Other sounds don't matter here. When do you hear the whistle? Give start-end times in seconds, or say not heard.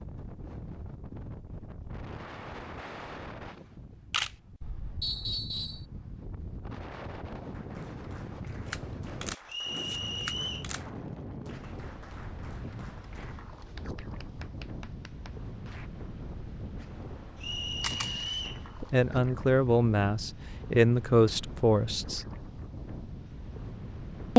5.0-5.8, 9.4-10.7, 17.4-18.6.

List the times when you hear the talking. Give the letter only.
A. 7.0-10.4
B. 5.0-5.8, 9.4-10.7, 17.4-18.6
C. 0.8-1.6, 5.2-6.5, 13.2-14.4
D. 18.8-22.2
D.